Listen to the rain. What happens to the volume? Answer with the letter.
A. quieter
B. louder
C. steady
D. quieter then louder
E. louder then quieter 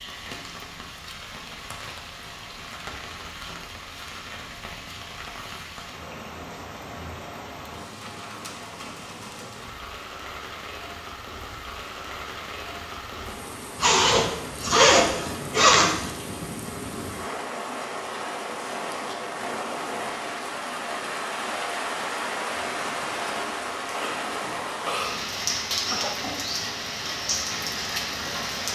B.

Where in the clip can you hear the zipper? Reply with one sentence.
The zipper can be heard from 13.8 to 16.1 s.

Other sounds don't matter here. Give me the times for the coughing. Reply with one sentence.
The coughing can be heard from 25.9 to 26.4 s.